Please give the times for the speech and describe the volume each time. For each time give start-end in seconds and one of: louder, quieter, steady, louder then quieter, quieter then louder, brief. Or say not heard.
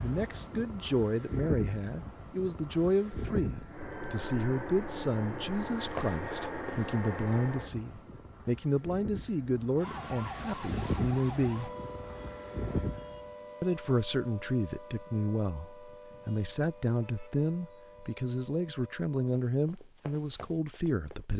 0.0-11.7 steady
13.6-21.3 steady.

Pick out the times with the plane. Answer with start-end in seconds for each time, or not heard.
0.0-13.3.